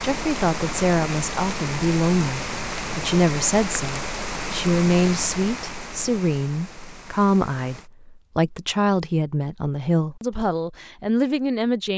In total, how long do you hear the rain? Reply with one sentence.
The rain can be heard for 8 seconds in total.